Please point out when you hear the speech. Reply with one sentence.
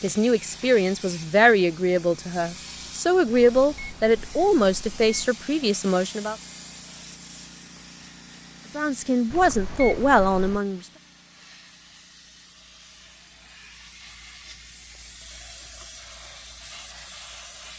You can hear the speech from 0.0 to 6.3 s and from 8.8 to 10.8 s.